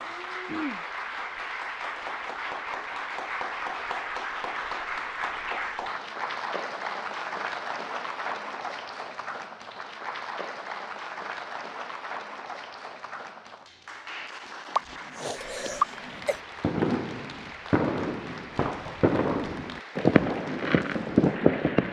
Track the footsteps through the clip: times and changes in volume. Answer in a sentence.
The footsteps can't be heard in this clip.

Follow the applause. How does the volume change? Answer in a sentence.
The volume of the applause goes down.